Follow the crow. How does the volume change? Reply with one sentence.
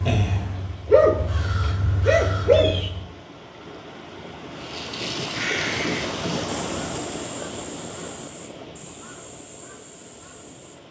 The loudness of the crow goes down.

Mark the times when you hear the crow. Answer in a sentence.
The crow can be heard from 0.0 to 3.1 s and from 4.5 to 10.8 s.